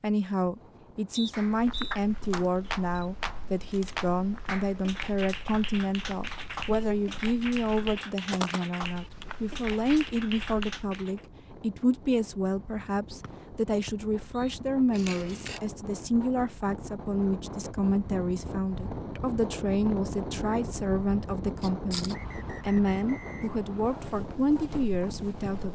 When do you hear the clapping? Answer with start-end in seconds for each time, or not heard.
1.3-11.2.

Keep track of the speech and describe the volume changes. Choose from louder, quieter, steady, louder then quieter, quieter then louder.
steady.